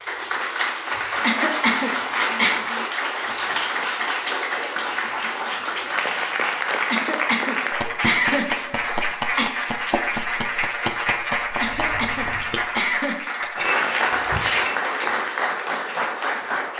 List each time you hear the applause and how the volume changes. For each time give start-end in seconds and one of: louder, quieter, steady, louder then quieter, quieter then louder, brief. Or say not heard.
0.0-16.7 steady.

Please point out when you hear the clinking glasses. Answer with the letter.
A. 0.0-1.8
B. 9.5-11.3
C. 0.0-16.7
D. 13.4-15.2
D.